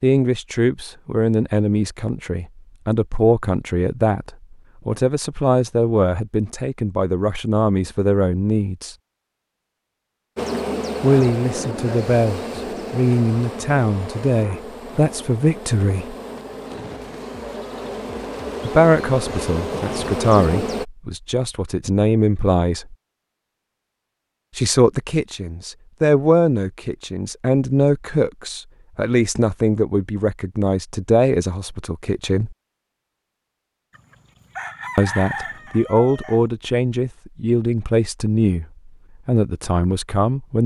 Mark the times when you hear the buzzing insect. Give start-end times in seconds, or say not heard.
10.3-20.9.